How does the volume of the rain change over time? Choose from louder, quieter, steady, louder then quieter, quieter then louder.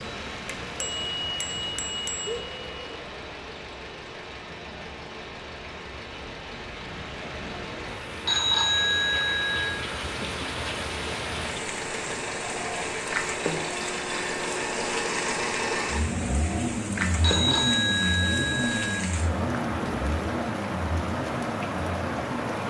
louder.